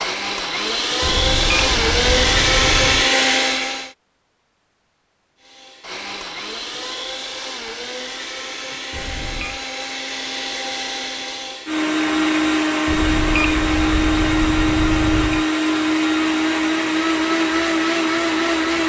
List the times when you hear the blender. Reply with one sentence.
The blender can be heard from 0.0 to 3.9 s and from 5.4 to 18.8 s.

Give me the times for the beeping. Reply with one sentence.
The beeping can be heard from 1.0 to 3.1 s, from 8.9 to 9.7 s and from 12.8 to 15.4 s.